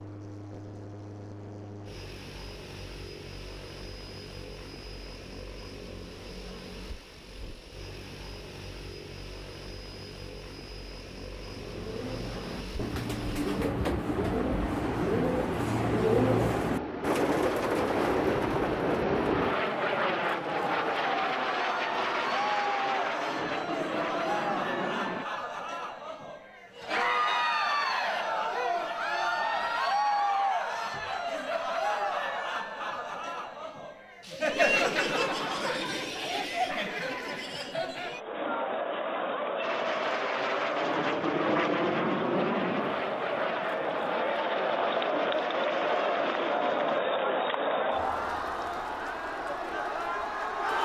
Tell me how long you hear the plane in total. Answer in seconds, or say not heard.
33 s.